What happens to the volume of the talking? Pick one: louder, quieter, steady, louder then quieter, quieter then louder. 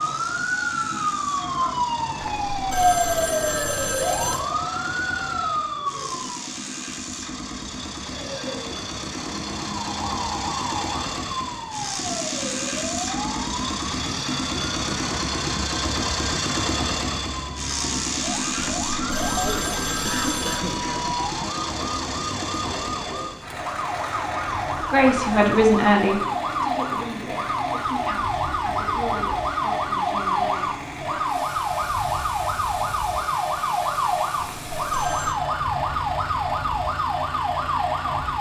quieter.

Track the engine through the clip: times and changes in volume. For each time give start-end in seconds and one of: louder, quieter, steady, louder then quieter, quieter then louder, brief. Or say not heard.
0.0-38.3 louder then quieter.